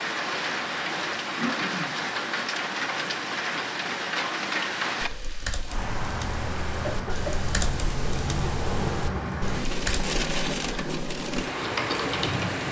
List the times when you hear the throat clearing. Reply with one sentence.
You can hear the throat clearing from 1.4 to 1.9 s and from 6.8 to 7.3 s.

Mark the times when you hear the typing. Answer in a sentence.
The typing can be heard from 5.0 to 12.6 s.